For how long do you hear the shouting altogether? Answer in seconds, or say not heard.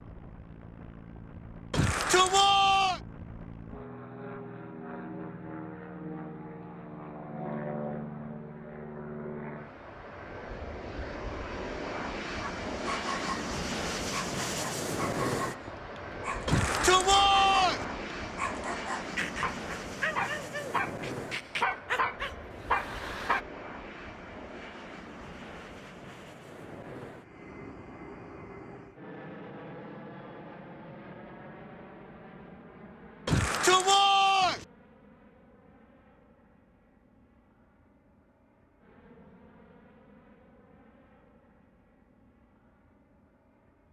4 s.